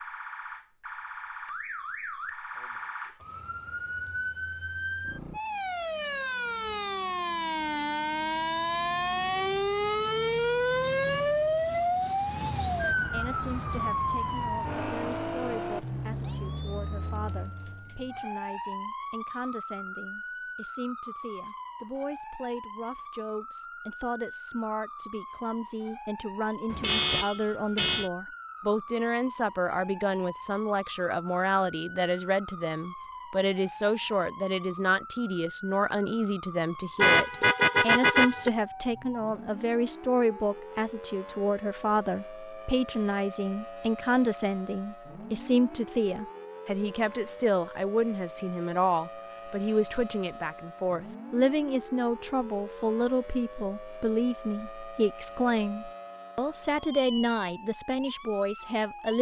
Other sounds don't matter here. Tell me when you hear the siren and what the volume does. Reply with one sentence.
You can hear the siren from 0.0 to 59.1 s, getting quieter.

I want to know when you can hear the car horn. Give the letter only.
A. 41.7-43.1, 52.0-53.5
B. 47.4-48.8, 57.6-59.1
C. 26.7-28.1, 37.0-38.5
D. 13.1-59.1
C.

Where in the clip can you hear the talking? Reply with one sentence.
You can hear the talking from 13.1 to 59.1 s.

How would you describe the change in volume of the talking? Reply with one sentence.
The volume of the talking goes up.